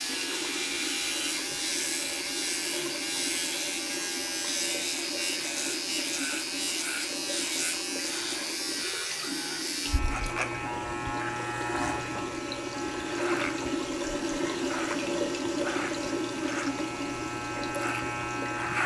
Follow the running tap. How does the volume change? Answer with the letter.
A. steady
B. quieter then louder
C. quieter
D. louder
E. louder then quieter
D.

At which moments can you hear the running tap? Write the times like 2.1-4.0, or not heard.
0.0-18.8.